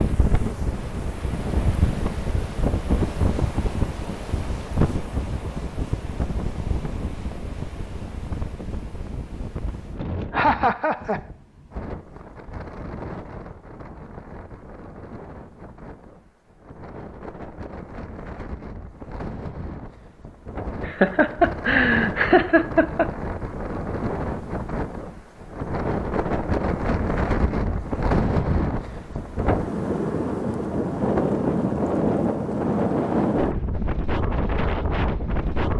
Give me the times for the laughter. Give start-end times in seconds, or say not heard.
10.3-11.2, 20.9-23.1.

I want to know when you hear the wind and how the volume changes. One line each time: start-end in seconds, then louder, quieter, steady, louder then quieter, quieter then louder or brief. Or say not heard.
0.0-35.7 quieter then louder.